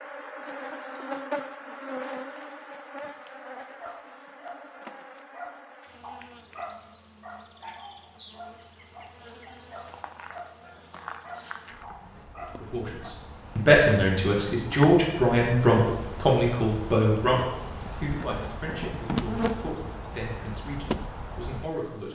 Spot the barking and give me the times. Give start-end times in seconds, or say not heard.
3.2-13.1.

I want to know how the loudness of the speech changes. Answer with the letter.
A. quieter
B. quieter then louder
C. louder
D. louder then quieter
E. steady
A.